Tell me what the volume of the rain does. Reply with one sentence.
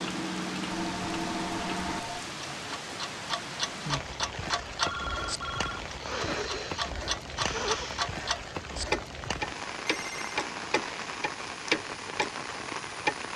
The loudness of the rain stays about the same.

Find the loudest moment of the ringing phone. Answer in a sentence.
The loudest moment of the ringing phone is at 5 seconds.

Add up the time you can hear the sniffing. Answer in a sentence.
You can hear the sniffing for 2 seconds altogether.